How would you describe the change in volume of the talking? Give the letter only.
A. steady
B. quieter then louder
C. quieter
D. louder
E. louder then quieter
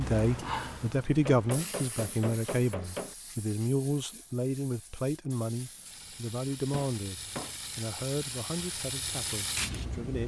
C.